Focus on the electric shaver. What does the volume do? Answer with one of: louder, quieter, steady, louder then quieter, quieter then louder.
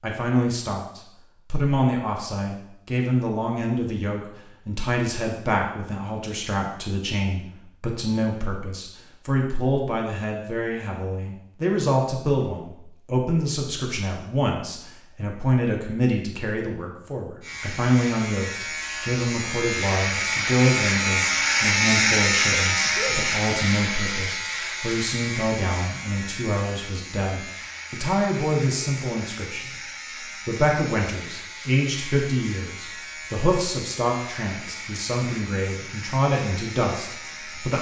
quieter.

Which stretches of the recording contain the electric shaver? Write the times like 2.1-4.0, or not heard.
17.4-37.7.